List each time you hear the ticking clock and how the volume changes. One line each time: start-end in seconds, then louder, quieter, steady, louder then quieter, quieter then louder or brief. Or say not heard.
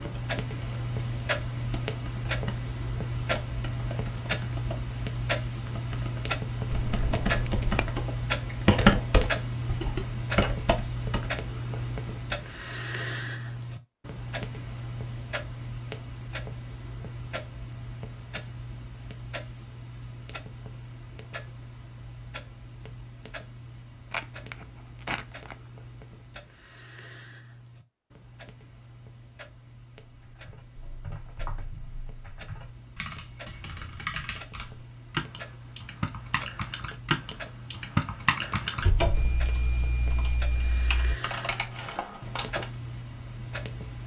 0.0-44.0 quieter then louder.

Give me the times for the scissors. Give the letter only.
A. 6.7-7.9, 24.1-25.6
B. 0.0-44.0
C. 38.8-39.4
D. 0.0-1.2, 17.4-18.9
A.